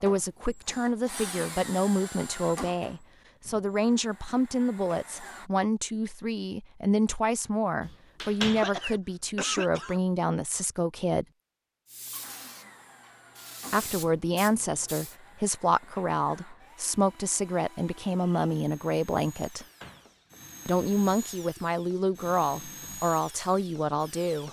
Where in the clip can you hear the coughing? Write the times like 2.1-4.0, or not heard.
8.6-10.0.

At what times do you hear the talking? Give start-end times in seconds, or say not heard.
0.0-11.2, 13.7-19.6, 20.6-24.4.